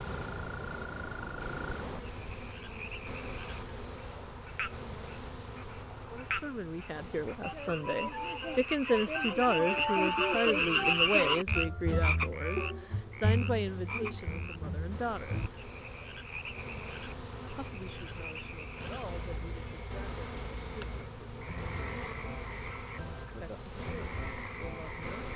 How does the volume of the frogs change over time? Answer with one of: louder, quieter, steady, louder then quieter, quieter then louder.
louder then quieter.